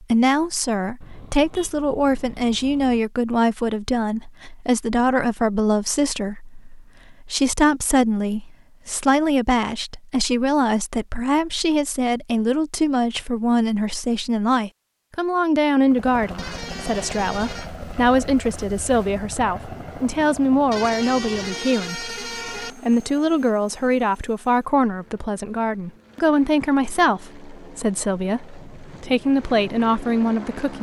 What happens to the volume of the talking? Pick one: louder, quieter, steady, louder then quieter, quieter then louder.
steady.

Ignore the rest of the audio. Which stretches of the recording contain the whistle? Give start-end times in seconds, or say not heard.
not heard.